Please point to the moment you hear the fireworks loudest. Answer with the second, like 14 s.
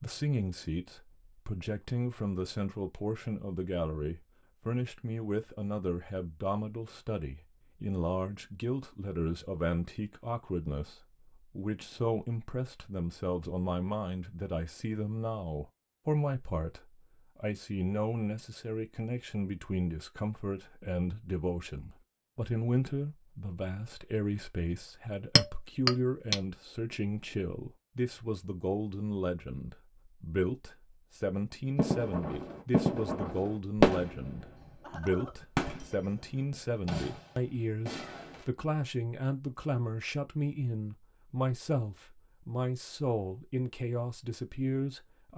34 s.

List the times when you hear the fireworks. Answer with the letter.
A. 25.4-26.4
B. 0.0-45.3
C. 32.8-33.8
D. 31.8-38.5
D.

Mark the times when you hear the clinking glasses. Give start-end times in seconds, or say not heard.
25.4-26.4.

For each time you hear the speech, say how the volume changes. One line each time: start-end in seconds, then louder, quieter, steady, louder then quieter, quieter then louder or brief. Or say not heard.
0.0-45.3 steady.